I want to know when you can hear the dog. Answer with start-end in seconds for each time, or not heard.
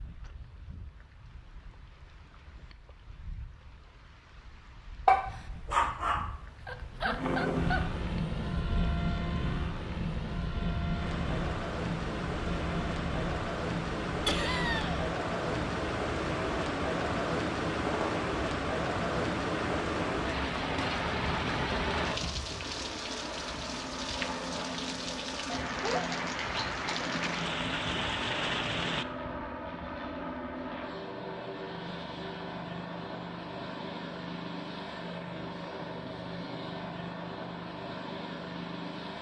5.0-7.9.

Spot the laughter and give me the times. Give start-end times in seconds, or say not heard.
14.2-15.1.